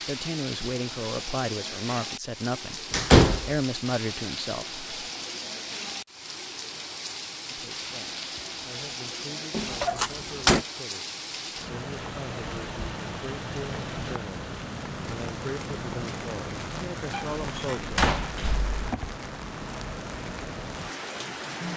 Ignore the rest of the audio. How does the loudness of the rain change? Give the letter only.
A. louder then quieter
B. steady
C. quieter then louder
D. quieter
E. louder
B.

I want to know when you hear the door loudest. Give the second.
3 s.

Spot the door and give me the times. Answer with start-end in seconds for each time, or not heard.
2.9-3.5, 9.5-10.7, 17.1-18.7.